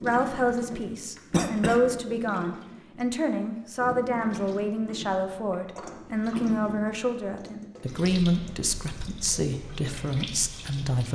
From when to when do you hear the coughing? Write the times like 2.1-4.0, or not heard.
1.3-1.8.